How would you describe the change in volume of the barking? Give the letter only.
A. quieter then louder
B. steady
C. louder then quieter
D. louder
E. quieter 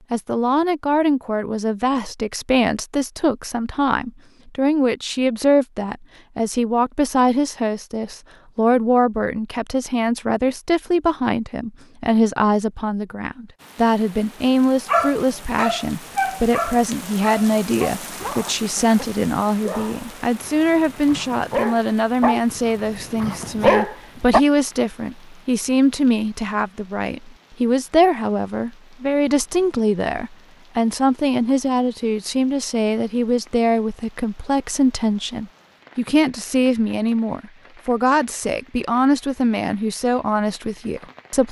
A.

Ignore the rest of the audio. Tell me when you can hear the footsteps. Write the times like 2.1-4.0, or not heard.
not heard.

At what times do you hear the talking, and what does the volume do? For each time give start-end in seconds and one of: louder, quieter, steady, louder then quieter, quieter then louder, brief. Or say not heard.
0.1-41.4 steady.